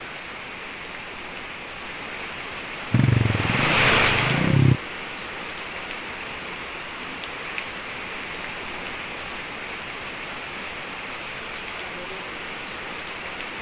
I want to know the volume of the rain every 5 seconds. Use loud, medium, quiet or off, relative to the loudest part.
loud, medium, medium.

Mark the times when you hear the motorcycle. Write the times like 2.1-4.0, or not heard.
2.9-4.8.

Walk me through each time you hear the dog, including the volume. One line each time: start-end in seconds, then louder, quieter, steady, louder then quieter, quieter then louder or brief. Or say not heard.
not heard.